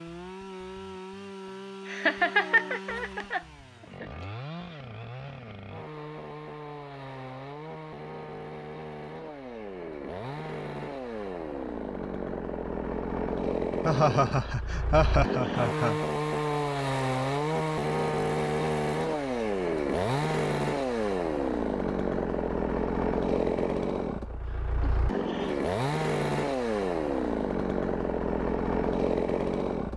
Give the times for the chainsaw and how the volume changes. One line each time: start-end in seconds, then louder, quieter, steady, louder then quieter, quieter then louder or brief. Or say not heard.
0.0-29.9 louder.